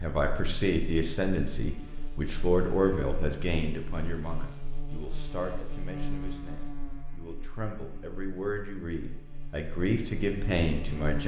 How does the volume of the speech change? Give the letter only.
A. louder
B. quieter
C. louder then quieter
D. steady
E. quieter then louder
E.